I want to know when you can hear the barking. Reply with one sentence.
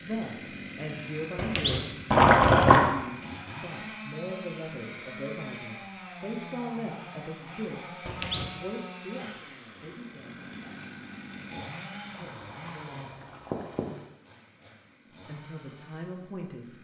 You can't hear the barking here.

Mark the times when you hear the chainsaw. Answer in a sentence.
You can hear the chainsaw from 0.0 to 16.7 s.